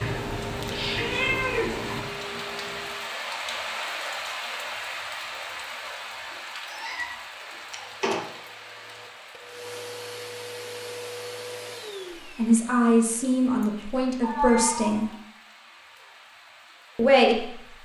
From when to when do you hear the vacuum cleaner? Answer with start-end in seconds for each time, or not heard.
0.0-3.1, 7.6-12.6.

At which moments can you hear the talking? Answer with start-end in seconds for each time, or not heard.
12.2-15.1, 16.9-17.8.